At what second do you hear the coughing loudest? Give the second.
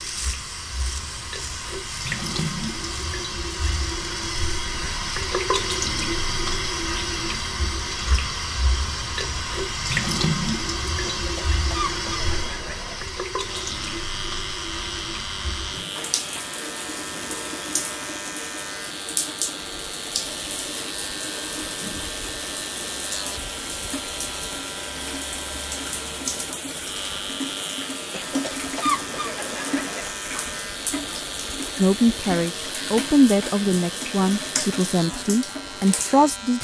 29 s.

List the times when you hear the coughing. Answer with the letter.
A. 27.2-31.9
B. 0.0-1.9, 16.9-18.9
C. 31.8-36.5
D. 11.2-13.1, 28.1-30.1
D.